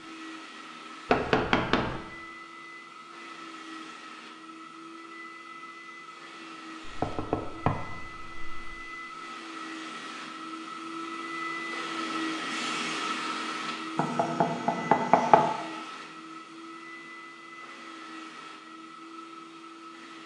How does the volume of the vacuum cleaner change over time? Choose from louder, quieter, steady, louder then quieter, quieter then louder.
louder then quieter.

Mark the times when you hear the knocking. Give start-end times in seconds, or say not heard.
1.1-2.0, 6.8-8.8, 13.9-15.5.